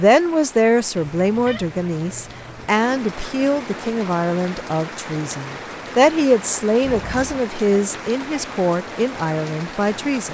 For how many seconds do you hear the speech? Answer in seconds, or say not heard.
10 s.